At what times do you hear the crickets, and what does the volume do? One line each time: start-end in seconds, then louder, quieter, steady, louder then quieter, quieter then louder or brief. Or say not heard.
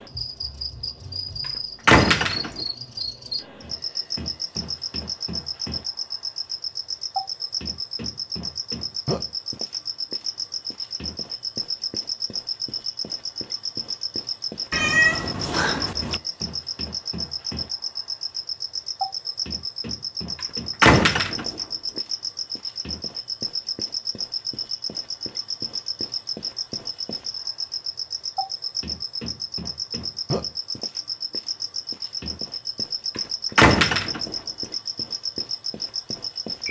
0.0-36.6 steady.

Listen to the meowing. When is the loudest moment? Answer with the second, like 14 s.
15 s.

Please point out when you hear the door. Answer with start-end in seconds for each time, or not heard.
1.9-2.6, 20.8-21.6, 33.5-34.4.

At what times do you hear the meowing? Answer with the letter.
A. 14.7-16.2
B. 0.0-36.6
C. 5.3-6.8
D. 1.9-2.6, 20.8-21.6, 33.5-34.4
A.